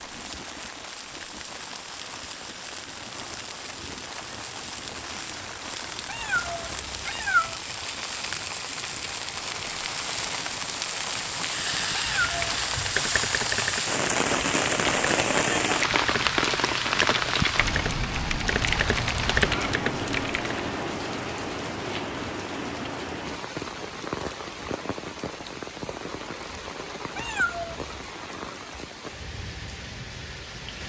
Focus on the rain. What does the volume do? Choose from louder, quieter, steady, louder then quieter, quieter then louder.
louder then quieter.